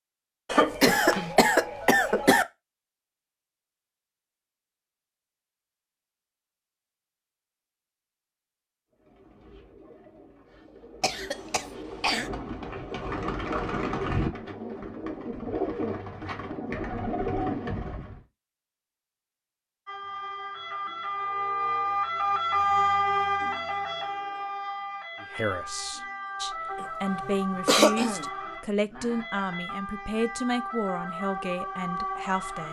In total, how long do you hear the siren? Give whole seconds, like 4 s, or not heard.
13 s.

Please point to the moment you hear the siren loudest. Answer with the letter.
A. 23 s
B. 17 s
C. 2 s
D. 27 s
A.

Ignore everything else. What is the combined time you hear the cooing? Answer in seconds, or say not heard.
9 s.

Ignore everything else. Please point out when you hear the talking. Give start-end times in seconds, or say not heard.
25.2-32.6.